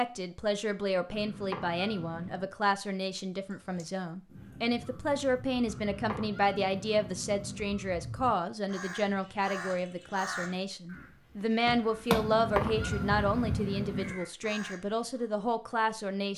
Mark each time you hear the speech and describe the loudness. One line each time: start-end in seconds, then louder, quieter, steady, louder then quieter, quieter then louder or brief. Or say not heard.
0.0-16.3 steady.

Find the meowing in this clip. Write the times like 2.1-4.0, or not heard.
1.1-2.5, 5.7-7.7, 12.1-14.2.